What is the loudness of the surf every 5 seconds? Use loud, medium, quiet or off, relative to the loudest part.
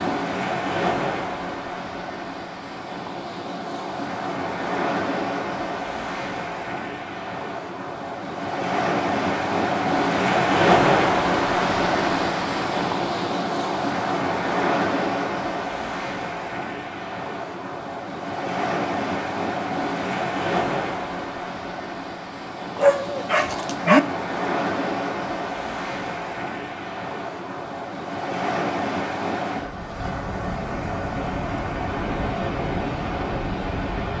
medium, medium, loud, medium, medium, medium, medium.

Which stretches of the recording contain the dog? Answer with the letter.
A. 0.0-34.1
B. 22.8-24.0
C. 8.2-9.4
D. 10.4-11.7
B.